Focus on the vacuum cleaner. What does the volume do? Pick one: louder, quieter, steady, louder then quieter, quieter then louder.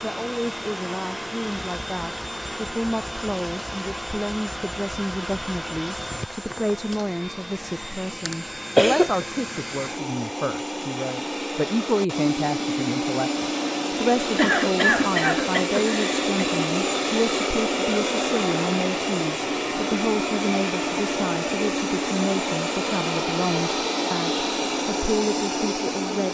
louder.